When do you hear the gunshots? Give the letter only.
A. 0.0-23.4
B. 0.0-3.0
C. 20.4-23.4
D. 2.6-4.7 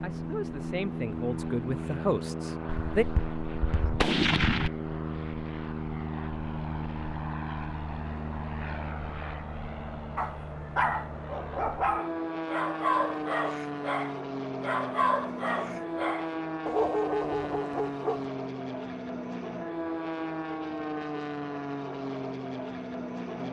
D.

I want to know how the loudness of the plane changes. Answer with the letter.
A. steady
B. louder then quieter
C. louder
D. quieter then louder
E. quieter
A.